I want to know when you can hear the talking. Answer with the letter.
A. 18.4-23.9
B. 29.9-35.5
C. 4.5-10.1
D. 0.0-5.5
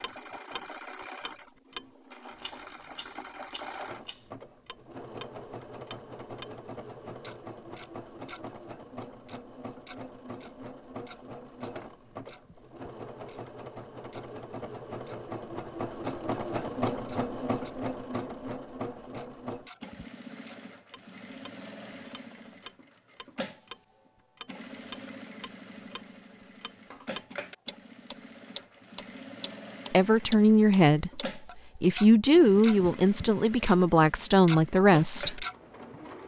B.